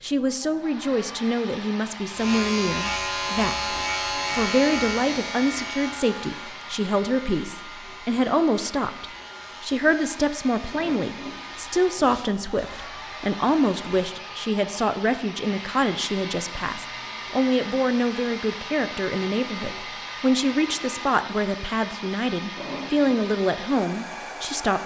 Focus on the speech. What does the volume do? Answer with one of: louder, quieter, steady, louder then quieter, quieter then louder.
steady.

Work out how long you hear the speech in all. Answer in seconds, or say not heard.
25 s.